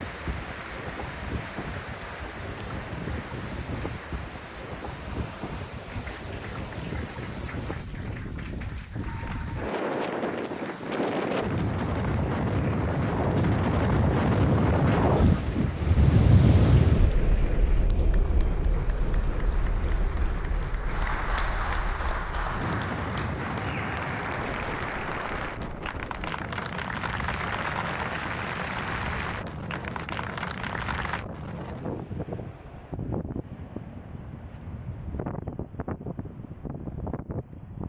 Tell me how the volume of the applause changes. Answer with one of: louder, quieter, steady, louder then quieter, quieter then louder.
louder.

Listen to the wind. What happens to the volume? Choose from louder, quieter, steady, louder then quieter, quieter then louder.
louder then quieter.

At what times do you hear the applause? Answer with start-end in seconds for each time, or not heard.
0.0-31.2.